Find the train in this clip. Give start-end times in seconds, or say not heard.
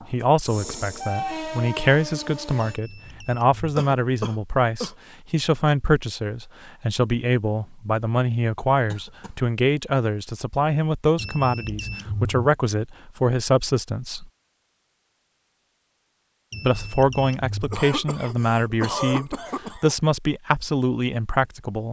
0.0-2.8.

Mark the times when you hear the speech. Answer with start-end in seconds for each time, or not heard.
0.1-14.2, 16.6-21.8.